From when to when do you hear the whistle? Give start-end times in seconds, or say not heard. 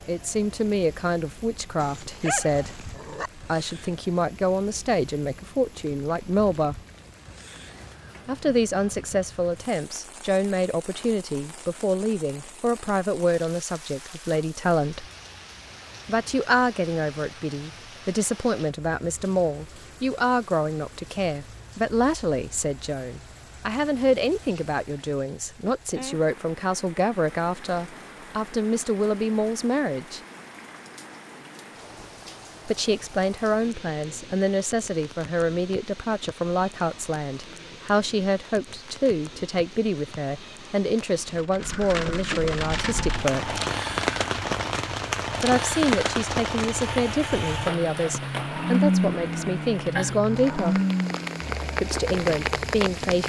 not heard.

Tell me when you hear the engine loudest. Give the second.
49 s.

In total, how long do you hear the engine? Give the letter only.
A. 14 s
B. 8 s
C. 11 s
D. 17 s
C.